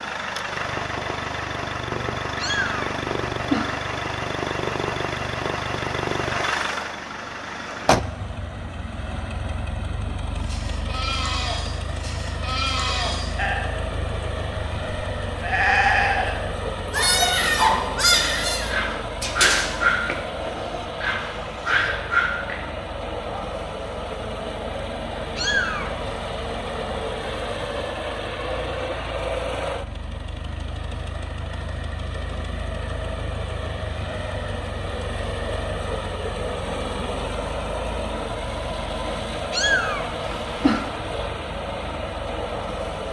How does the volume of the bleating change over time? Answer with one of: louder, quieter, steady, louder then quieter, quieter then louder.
louder then quieter.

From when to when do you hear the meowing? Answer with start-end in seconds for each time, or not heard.
2.4-3.8, 25.4-26.1, 39.5-40.9.